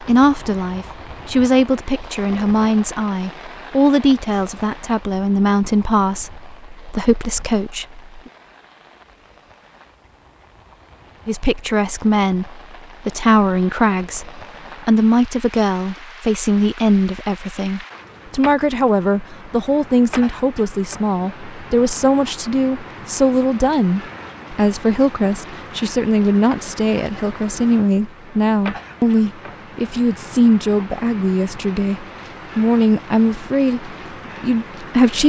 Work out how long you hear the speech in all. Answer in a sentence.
The speech can be heard for 32 seconds in total.